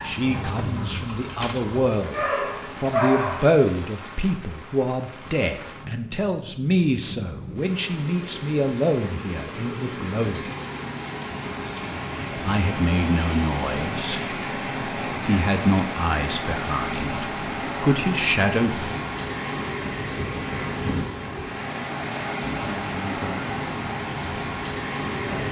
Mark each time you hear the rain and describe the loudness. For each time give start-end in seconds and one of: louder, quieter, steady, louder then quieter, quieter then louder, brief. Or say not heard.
0.0-25.4 louder.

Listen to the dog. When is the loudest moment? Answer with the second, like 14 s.
3 s.